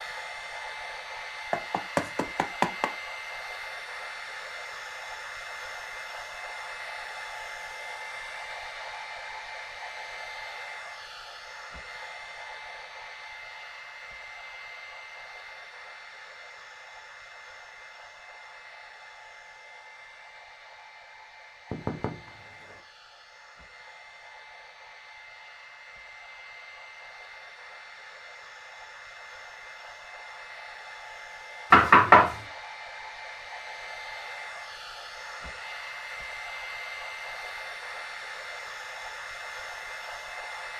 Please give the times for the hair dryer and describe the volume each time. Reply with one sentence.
The hair dryer can be heard from 0.0 to 40.7 s, getting quieter then louder.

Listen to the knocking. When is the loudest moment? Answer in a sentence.
The volume of the knocking peaks at 32 seconds.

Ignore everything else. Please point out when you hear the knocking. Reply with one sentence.
The knocking can be heard from 1.5 to 2.9 s, from 21.7 to 22.2 s and from 31.7 to 32.3 s.